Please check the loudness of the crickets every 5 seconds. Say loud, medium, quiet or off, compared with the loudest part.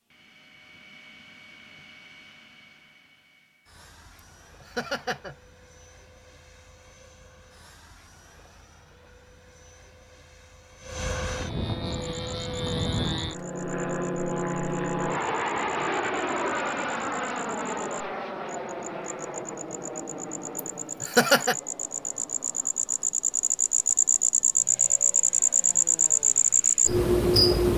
off, off, quiet, quiet, medium, loud.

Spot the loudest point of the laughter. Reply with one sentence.
The loudest moment of the laughter is at 21 seconds.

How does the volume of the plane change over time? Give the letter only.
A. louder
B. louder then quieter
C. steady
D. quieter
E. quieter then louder
B.